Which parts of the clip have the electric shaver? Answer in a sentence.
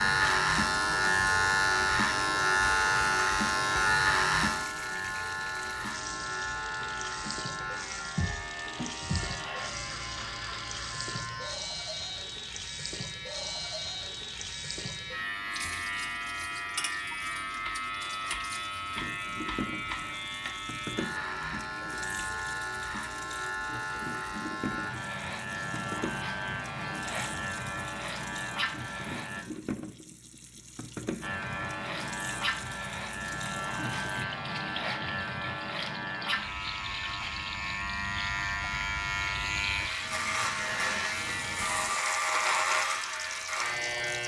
The electric shaver can be heard from 0.0 to 29.4 s and from 31.2 to 44.2 s.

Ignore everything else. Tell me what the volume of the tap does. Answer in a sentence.
The volume of the tap stays about the same.